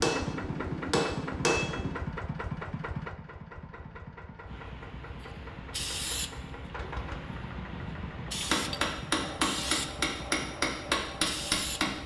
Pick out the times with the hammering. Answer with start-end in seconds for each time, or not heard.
0.0-1.9, 8.5-12.0.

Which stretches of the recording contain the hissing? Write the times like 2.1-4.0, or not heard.
4.5-12.0.